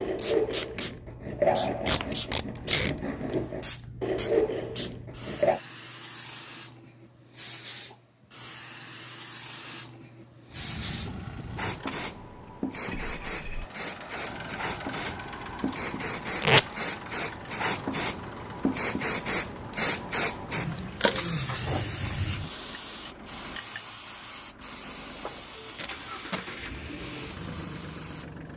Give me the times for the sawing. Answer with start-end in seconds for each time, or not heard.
0.0-5.6.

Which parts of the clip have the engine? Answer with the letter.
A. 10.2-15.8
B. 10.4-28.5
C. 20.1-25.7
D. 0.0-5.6
B.